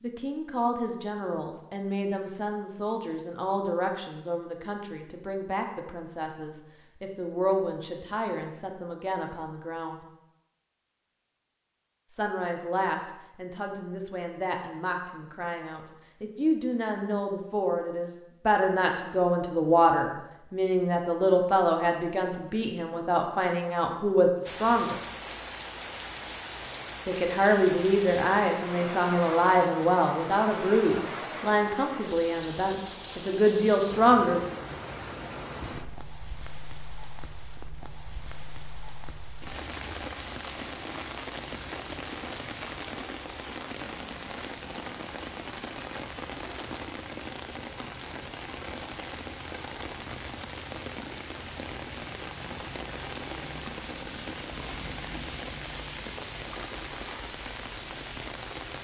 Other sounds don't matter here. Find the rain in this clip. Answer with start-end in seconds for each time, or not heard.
24.4-58.7.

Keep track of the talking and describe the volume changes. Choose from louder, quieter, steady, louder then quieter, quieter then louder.
louder.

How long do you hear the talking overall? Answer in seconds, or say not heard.
30 s.